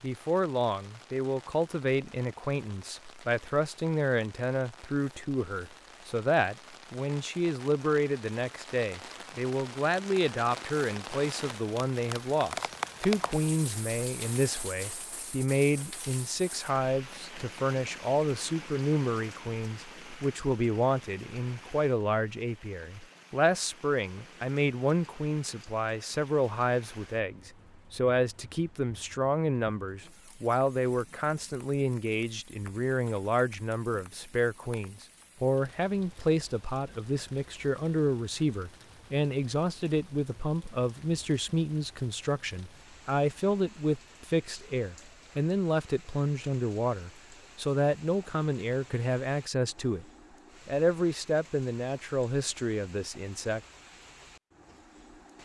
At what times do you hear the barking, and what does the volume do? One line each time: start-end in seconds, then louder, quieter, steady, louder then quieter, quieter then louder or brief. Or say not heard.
not heard.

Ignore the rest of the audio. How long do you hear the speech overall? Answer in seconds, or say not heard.
53 s.